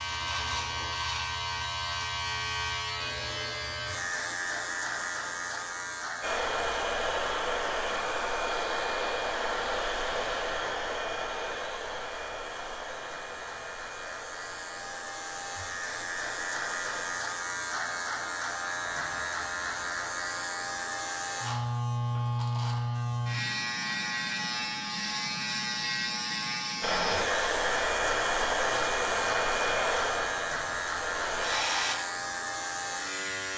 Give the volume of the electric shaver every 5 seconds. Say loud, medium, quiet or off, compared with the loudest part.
loud, medium, medium, loud, loud, loud, loud.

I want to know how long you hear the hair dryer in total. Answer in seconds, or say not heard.
16 s.